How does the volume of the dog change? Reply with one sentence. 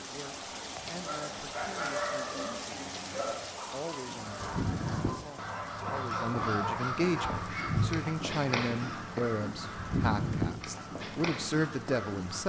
The volume of the dog goes down, then up.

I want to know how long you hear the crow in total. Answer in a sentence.
The crow can be heard for 8 seconds in total.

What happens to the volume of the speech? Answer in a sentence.
The volume of the speech goes up.